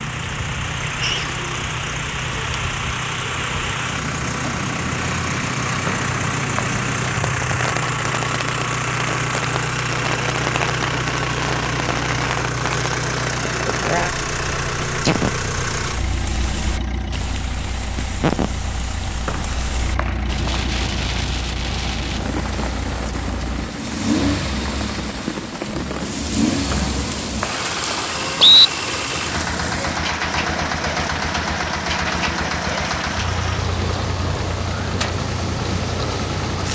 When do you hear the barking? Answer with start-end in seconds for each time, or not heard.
not heard.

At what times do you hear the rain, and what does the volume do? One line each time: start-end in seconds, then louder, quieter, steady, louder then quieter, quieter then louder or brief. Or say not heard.
0.0-36.7 steady.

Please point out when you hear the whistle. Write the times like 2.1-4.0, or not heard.
5.8-6.8, 19.2-20.6, 26.7-28.7.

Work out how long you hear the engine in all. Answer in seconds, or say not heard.
37 s.